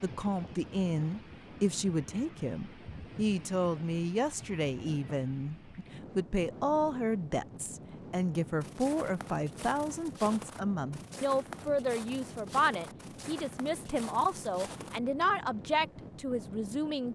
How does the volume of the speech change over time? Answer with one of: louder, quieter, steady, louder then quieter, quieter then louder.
steady.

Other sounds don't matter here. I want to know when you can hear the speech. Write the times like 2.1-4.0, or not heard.
0.0-17.1.